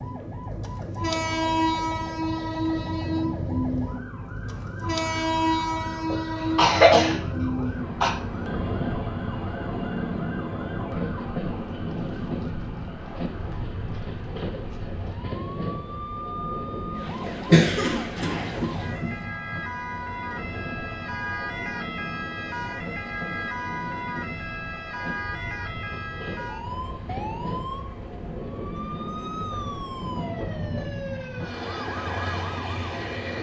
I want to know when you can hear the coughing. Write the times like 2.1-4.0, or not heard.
6.1-8.1, 17.2-19.1.